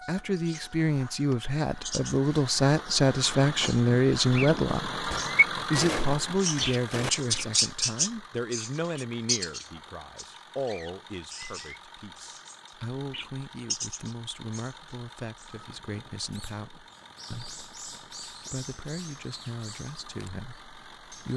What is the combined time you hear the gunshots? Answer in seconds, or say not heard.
2 s.